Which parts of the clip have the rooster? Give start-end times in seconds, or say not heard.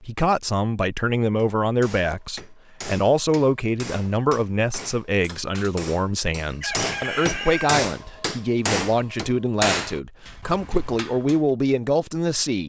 6.5-7.8.